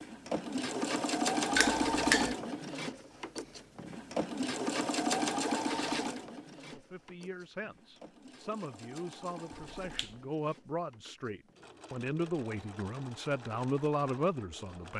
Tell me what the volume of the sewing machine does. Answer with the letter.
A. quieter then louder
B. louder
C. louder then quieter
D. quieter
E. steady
D.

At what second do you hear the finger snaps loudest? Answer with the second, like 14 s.
2 s.